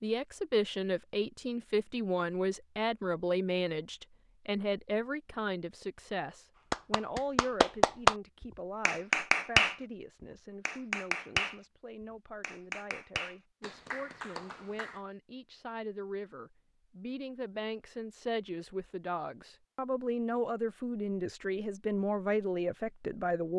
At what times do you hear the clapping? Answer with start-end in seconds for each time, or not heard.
6.7-8.2, 8.8-9.8, 10.7-11.6, 12.4-15.0.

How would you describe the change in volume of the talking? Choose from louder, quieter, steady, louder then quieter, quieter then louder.
quieter then louder.